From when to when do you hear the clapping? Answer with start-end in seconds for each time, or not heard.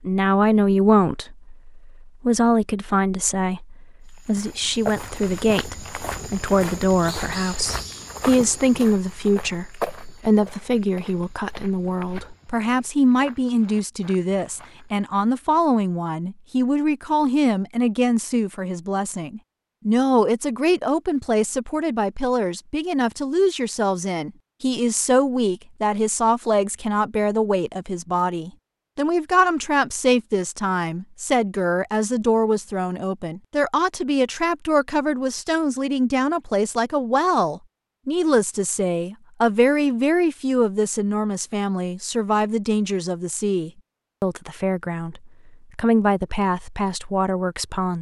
not heard.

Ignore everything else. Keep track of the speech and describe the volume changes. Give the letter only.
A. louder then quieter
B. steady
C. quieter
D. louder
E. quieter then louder
B.